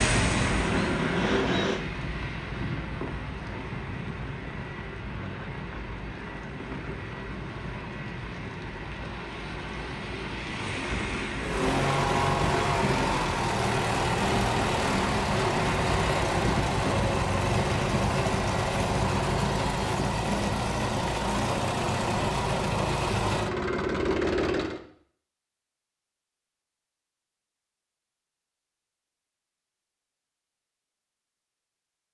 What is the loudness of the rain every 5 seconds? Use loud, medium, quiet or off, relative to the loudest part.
loud, medium, loud, loud, off, off, off.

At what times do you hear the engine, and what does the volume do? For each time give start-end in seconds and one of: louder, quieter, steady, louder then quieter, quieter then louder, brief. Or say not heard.
0.2-1.9 brief
11.4-24.8 steady.